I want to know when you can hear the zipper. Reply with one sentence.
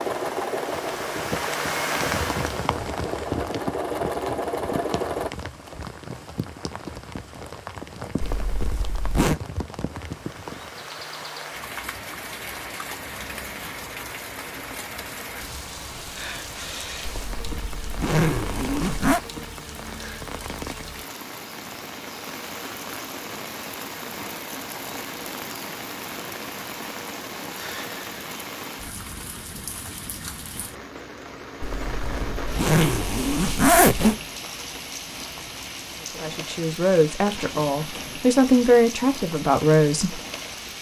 The zipper can be heard from 8.2 to 9.3 s, from 17.1 to 19.2 s and from 31.6 to 34.1 s.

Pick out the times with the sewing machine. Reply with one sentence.
You can hear the sewing machine from 0.0 to 5.3 s.